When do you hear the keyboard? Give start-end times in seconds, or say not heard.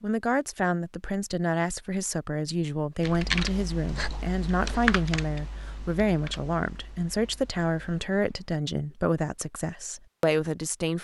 3.0-8.5.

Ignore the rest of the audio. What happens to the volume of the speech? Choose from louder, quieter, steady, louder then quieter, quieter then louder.
steady.